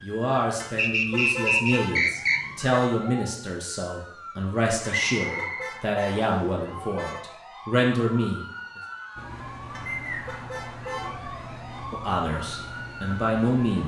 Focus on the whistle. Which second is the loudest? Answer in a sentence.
The volume of the whistle peaks at 1 second.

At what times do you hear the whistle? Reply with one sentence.
You can hear the whistle from 0.8 to 2.4 s, from 5.1 to 6.5 s and from 9.8 to 10.4 s.